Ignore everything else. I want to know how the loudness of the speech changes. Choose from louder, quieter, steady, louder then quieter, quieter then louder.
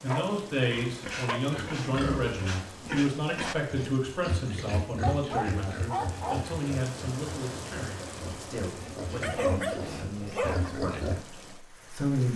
quieter.